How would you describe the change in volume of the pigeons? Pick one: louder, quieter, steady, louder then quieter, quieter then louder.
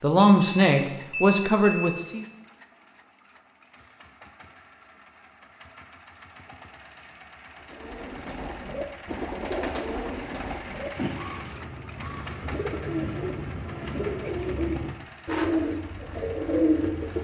louder.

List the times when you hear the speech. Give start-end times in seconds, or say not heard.
0.0-2.2.